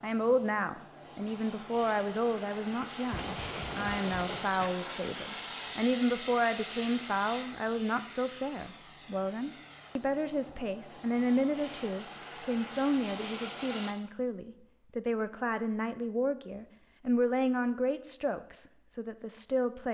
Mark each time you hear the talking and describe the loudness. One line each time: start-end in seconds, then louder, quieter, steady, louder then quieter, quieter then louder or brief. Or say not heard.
0.0-19.9 steady.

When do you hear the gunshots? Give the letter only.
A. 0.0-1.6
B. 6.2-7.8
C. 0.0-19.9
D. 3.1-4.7
D.